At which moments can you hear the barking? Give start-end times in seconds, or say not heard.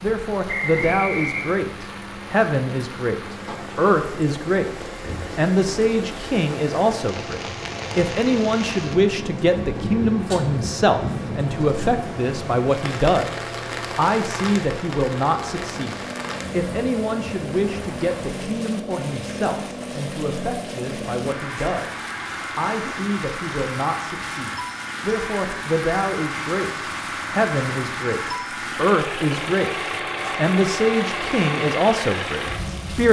not heard.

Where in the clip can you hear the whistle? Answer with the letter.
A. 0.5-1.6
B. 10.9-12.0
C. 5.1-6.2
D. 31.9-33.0
A.